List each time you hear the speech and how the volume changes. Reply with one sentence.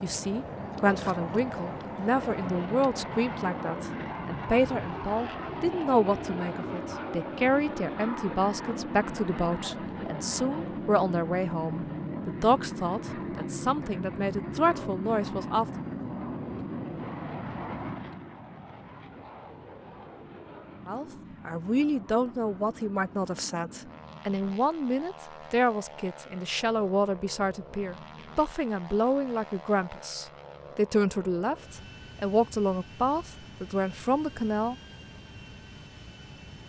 You can hear the speech from 0.0 to 15.7 s, at a steady volume; and from 20.9 to 34.8 s, at a steady volume.